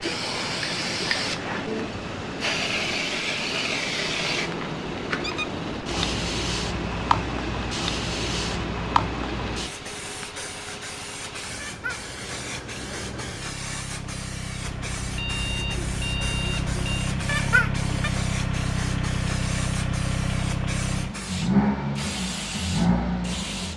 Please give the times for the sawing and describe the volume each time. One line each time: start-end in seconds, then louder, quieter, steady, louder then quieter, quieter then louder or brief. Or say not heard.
not heard.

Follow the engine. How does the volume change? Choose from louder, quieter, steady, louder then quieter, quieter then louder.
louder.